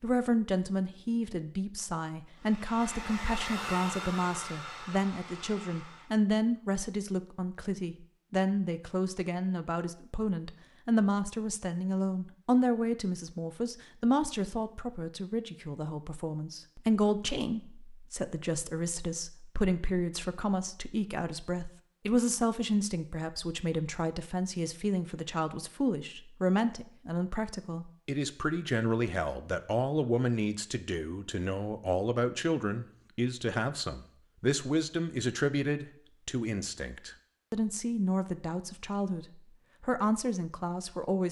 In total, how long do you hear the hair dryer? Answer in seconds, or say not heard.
4 s.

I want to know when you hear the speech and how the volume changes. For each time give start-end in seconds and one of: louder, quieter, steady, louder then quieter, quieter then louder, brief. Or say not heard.
0.0-41.2 steady.